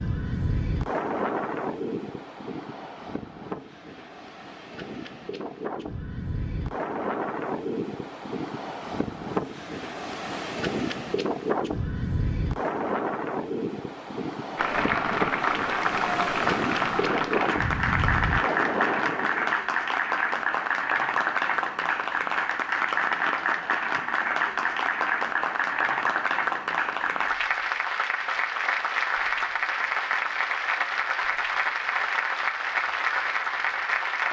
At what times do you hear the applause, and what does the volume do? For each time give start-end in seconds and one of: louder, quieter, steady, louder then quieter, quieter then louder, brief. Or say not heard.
14.6-34.2 steady.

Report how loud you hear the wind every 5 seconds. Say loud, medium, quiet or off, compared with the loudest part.
loud, loud, loud, loud, off, off, off.